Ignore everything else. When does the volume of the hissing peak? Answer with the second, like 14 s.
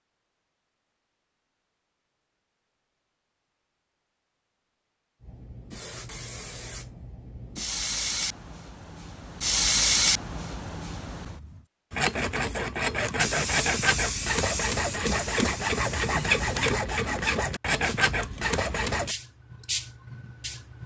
10 s.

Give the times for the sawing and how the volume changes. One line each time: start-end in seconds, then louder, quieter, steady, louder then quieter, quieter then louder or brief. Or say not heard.
11.9-19.1 steady.